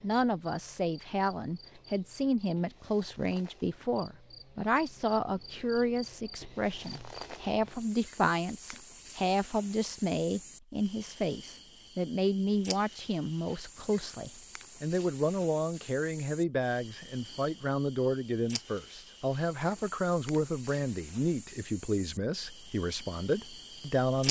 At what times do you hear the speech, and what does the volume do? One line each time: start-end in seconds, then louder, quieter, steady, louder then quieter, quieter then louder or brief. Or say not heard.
0.0-24.2 steady.